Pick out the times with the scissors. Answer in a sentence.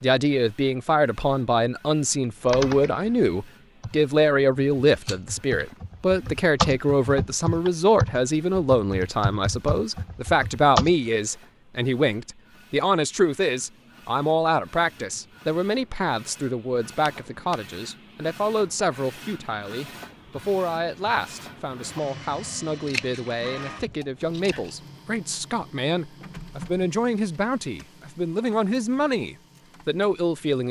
You can hear the scissors from 5.0 to 5.7 s, from 16.9 to 17.6 s and from 22.9 to 24.8 s.